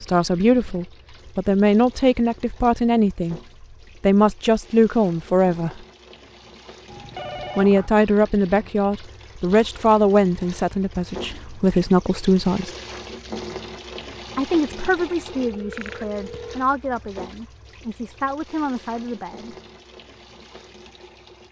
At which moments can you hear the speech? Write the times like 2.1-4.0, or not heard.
0.0-3.4, 4.0-5.8, 7.5-12.7, 14.3-19.6.